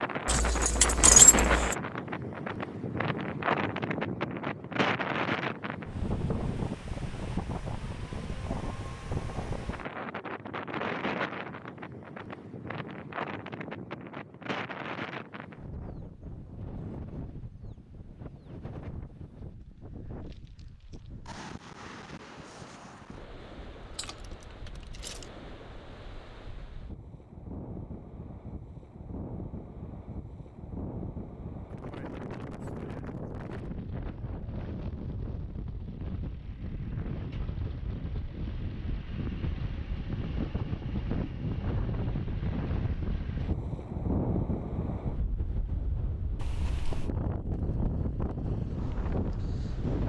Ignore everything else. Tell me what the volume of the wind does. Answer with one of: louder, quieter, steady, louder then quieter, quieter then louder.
quieter then louder.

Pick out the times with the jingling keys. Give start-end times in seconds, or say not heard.
0.2-1.8, 23.8-25.2, 46.4-47.1.